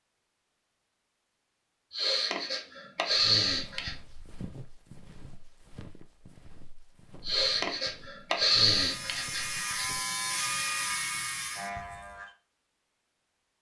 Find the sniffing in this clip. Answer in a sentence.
You can hear the sniffing from 1.9 to 4.0 s and from 7.2 to 9.8 s.